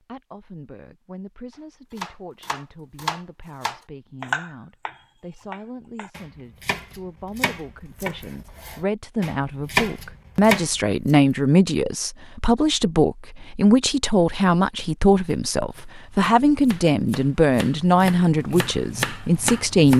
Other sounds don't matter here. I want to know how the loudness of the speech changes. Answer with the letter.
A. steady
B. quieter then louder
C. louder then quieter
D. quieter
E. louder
E.